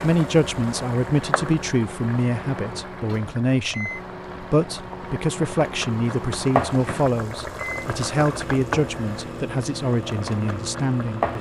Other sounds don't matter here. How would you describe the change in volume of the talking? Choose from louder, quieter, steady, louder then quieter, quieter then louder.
steady.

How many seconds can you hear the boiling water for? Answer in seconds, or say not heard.
11 s.